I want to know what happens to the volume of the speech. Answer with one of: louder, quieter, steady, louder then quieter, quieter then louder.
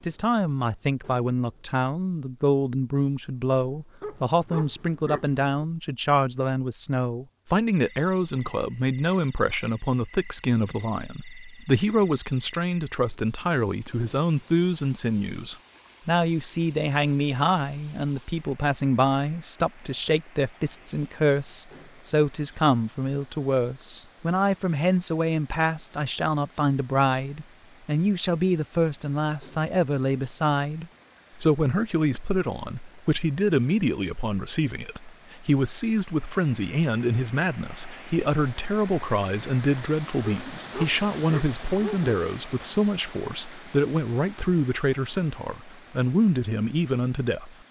steady.